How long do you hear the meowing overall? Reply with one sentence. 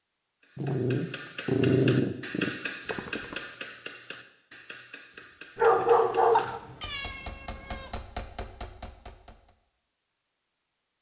The meowing can be heard for 2 seconds in total.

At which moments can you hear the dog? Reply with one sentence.
The dog can be heard from 0.6 to 3.4 s and from 5.5 to 6.5 s.